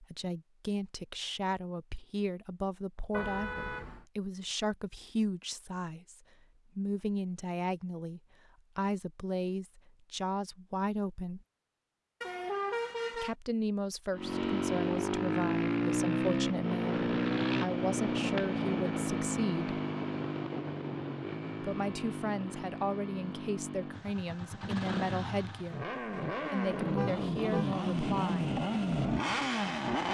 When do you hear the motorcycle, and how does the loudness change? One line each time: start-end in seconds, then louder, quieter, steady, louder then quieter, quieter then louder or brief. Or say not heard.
14.1-30.0 quieter then louder.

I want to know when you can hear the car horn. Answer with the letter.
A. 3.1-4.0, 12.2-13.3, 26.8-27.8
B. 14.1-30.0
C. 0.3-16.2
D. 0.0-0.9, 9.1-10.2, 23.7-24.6
A.